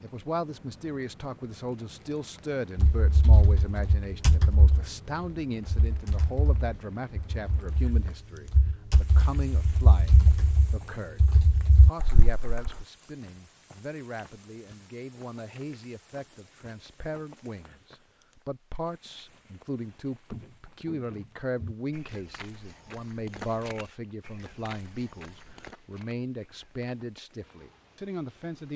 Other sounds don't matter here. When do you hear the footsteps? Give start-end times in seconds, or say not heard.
19.3-27.1.